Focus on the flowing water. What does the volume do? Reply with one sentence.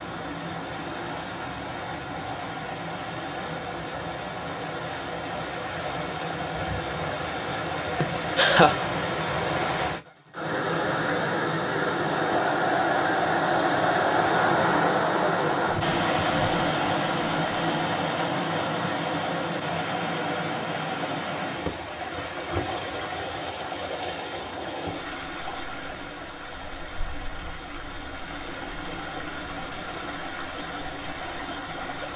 The volume of the flowing water goes up, then down.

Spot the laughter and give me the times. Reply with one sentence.
The laughter can be heard from 8.0 to 8.8 s.